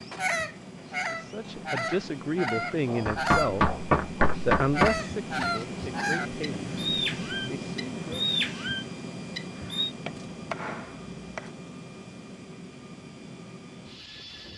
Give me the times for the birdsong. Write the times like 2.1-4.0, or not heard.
0.0-9.9.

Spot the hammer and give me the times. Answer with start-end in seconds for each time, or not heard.
3.0-5.0, 10.1-11.5.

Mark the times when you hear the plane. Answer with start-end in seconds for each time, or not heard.
0.0-14.5.